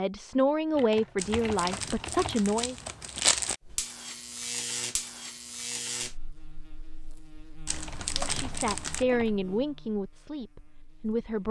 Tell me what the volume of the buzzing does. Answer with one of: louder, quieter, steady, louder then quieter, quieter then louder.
quieter.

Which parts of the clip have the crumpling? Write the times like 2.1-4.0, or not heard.
1.1-3.5, 7.7-9.1.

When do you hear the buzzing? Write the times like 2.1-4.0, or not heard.
3.6-11.4.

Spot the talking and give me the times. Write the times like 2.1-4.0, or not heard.
0.0-2.8, 8.2-11.4.